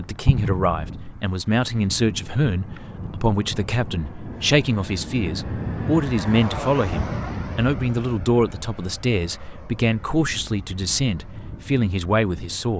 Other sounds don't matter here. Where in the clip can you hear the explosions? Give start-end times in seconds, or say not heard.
0.2-0.9.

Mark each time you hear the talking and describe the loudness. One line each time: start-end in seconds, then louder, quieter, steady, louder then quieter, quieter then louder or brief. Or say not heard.
0.0-12.7 steady.